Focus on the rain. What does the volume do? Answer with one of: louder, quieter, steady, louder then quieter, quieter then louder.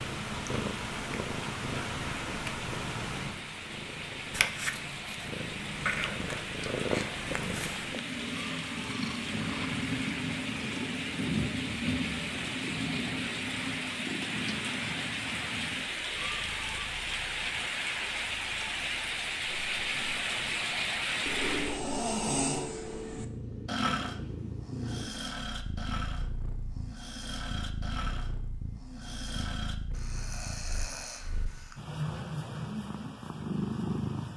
louder.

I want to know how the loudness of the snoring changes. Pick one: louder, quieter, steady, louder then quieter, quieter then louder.
quieter.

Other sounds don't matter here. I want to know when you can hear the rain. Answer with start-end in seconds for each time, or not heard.
0.0-21.8.